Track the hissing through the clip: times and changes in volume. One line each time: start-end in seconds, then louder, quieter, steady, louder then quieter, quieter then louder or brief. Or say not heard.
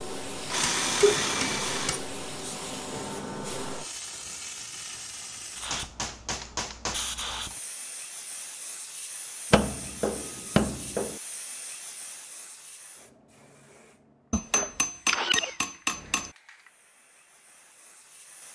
0.0-18.5 quieter.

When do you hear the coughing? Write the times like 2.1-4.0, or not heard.
0.9-1.4, 14.6-15.6.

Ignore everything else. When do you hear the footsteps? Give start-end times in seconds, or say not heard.
not heard.